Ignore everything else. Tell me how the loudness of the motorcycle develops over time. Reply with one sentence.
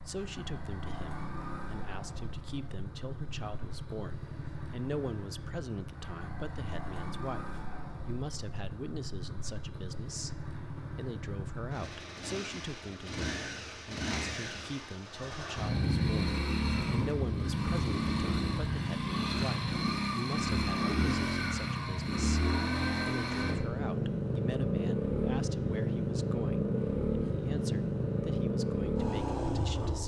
The volume of the motorcycle goes up.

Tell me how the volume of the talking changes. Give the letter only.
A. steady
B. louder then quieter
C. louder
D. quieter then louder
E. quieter
A.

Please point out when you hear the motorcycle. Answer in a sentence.
You can hear the motorcycle from 0.0 to 30.0 s.